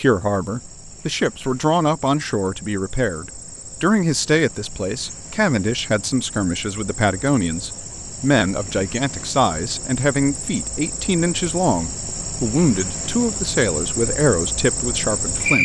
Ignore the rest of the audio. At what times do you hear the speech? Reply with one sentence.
You can hear the speech from 0.0 to 15.6 s.